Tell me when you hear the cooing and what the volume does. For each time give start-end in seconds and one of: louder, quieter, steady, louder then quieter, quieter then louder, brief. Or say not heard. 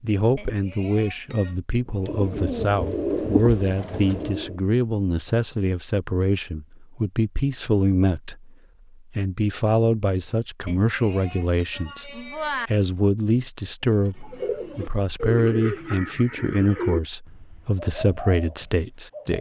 1.9-4.6 brief
13.8-19.3 quieter then louder.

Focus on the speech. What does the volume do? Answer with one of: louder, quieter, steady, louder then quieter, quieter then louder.
steady.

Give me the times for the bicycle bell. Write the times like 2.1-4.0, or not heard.
0.3-1.6, 10.7-12.7.